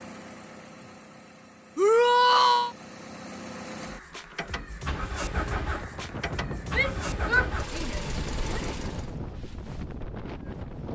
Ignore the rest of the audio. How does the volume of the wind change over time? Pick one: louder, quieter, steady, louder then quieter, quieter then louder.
steady.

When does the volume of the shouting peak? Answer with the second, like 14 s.
2 s.